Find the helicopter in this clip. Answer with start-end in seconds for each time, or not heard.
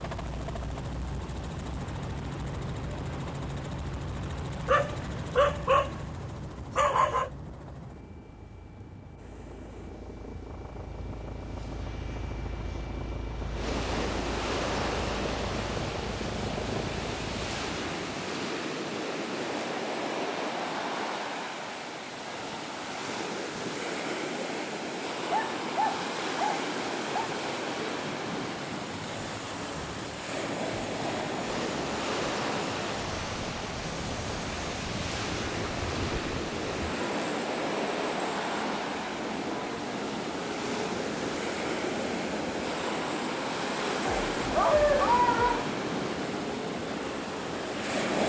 0.0-18.5, 28.8-48.2.